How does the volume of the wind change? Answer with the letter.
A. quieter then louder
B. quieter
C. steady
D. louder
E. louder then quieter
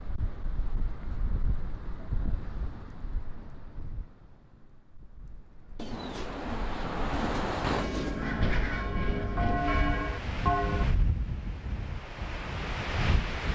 A.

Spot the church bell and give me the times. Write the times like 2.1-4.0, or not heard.
7.7-10.8.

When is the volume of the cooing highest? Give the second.
8 s.